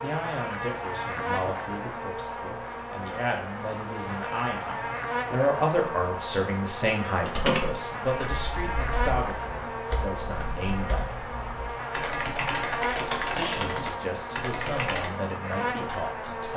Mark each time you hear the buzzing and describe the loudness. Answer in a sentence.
The buzzing can be heard from 0.0 to 16.5 s, at a steady volume.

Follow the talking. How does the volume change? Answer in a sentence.
The volume of the talking goes up, then down.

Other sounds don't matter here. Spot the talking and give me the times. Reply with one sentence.
You can hear the talking from 0.0 to 11.1 s and from 13.3 to 16.5 s.